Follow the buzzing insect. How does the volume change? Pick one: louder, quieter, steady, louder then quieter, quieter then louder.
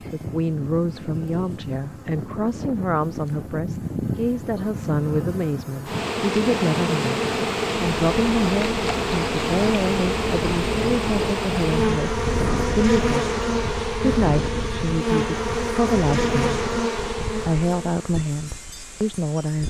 louder.